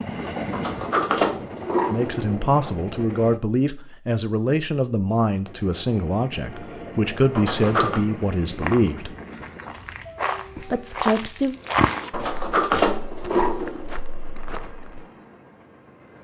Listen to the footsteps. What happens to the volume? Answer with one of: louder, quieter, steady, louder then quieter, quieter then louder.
louder then quieter.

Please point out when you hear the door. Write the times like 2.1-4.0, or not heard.
0.5-2.4, 7.3-8.0, 12.1-13.8.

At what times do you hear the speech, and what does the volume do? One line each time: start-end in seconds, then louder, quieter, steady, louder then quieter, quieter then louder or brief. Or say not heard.
1.9-9.2 steady
10.6-11.6 brief.